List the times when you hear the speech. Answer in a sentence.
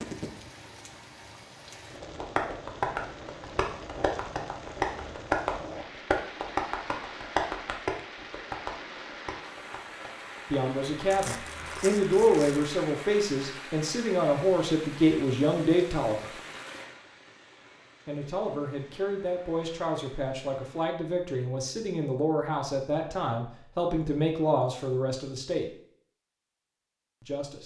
You can hear the speech from 10.5 to 16.3 s, from 18.1 to 25.6 s and from 27.2 to 27.6 s.